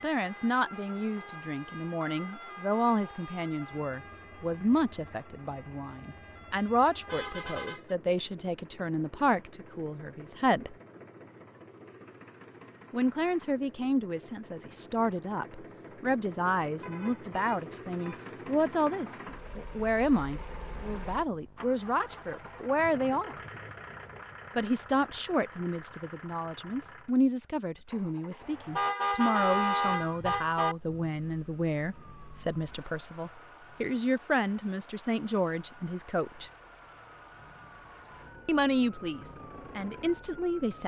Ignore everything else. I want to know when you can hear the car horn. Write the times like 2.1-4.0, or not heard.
7.0-8.0, 16.8-18.3, 28.8-30.8.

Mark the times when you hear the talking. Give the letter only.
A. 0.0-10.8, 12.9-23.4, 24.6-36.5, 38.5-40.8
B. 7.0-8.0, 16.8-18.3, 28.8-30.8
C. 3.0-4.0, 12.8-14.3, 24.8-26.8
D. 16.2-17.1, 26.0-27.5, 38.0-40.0
A.